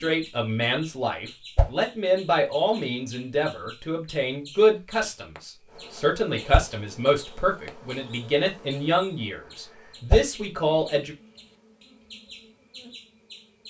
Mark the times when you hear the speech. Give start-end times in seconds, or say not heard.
0.0-11.2.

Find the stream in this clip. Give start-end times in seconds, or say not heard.
not heard.